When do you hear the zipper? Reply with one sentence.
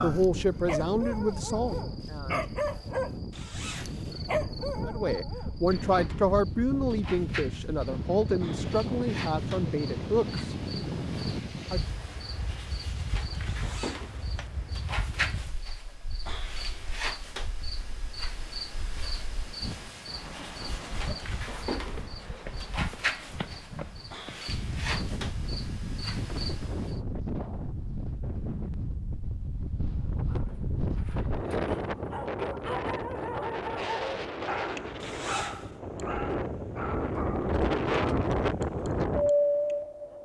The zipper can be heard from 3.3 to 4.3 s, from 13.5 to 14.5 s and from 35.0 to 35.8 s.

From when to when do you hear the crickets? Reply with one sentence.
The crickets can be heard from 0.0 to 27.0 s.